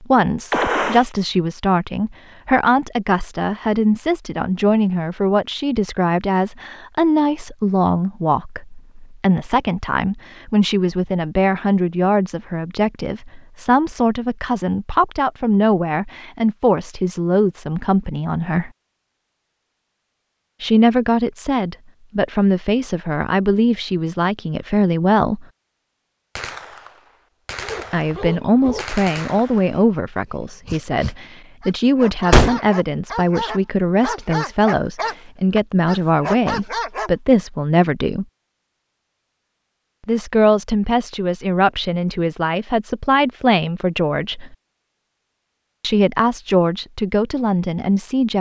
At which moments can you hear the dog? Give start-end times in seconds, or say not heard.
27.6-37.1.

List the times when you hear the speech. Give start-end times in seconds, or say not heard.
0.0-18.7, 20.6-25.4, 27.9-38.2, 40.0-44.5, 45.8-48.3.